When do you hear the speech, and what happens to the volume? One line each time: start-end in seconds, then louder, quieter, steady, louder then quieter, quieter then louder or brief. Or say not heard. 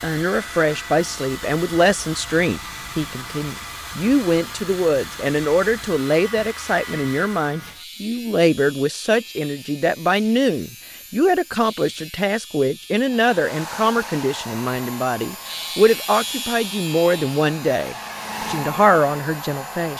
0.0-19.9 steady.